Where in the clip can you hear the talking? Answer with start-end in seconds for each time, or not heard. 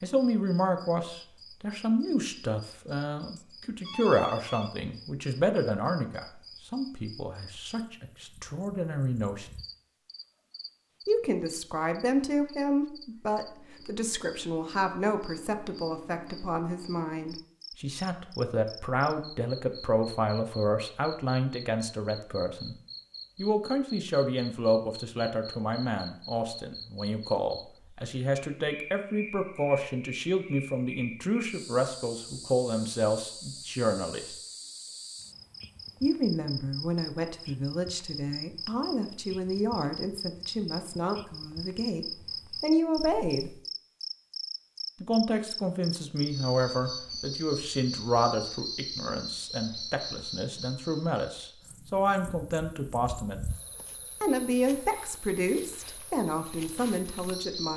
0.0-9.4, 11.1-22.8, 23.4-34.4, 36.0-43.5, 45.0-53.4, 54.2-57.7.